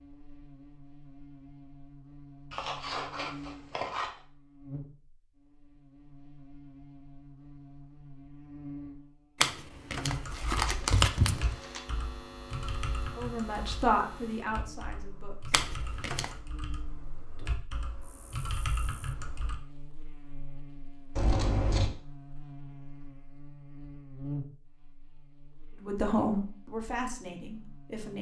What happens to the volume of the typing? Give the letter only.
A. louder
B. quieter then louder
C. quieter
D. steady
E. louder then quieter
B.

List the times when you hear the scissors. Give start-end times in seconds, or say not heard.
2.5-4.1, 10.3-11.8, 21.1-21.9.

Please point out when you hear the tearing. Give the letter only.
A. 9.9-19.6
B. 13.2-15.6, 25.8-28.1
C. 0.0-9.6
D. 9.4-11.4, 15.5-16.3
D.